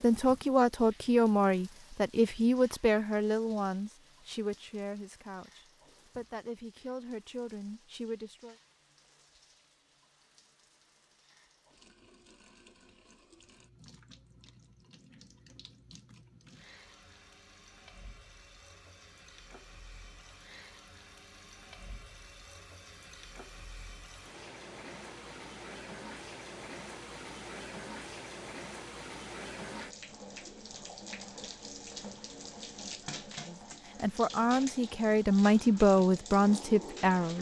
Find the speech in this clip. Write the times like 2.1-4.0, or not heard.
0.0-8.6, 33.5-37.3.